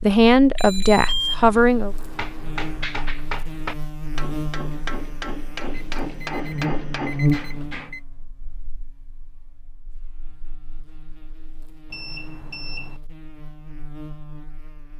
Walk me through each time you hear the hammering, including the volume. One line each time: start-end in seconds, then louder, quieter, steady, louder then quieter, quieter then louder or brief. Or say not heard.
1.9-7.9 steady.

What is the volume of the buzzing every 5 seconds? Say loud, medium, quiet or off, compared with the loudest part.
medium, loud, quiet.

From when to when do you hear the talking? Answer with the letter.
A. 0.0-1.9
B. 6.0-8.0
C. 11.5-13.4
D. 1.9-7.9
A.